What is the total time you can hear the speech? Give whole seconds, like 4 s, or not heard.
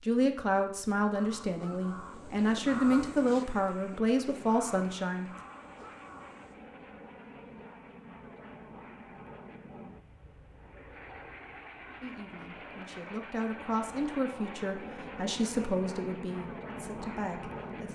11 s.